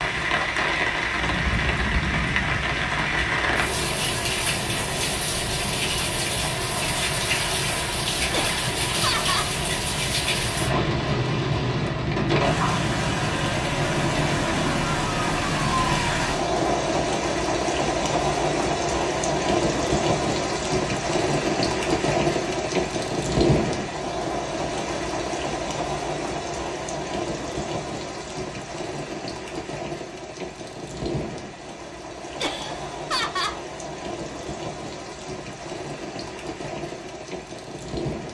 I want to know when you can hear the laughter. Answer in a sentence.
You can hear the laughter from 8.3 to 9.5 s and from 32.4 to 33.6 s.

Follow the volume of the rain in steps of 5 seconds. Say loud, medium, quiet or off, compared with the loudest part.
loud, loud, loud, loud, loud, medium, medium, medium.